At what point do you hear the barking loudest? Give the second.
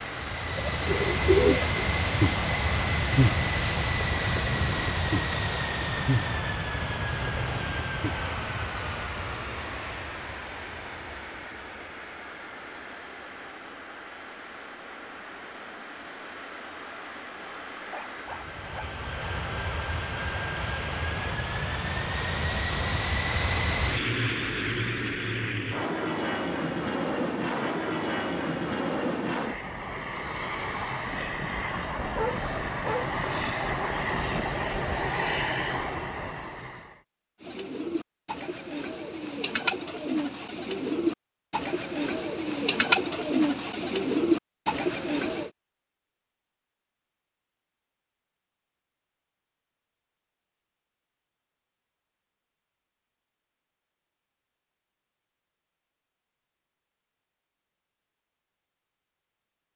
32 s.